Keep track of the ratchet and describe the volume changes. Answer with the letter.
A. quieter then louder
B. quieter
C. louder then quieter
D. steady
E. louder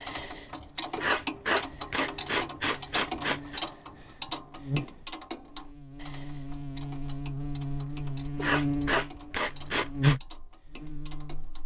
B.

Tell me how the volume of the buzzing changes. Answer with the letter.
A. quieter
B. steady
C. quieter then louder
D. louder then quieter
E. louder
E.